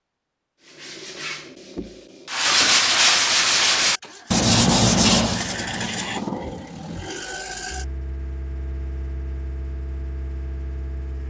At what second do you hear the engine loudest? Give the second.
6 s.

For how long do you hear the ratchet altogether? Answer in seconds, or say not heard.
not heard.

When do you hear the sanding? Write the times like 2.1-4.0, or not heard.
0.6-6.3.